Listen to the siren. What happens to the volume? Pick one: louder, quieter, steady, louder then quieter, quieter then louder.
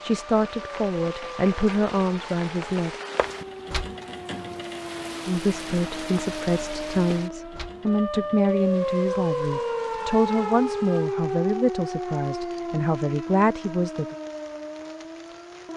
louder then quieter.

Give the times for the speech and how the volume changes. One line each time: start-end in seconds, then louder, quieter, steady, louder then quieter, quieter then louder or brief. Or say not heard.
0.0-2.9 brief
5.2-14.2 steady.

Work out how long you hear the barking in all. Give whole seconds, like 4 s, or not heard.
not heard.